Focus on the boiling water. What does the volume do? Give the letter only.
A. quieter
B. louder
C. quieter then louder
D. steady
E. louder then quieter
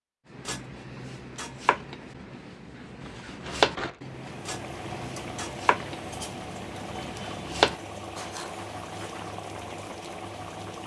D.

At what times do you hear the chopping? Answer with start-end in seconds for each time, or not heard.
0.3-9.2.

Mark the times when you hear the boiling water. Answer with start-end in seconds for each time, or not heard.
4.0-10.8.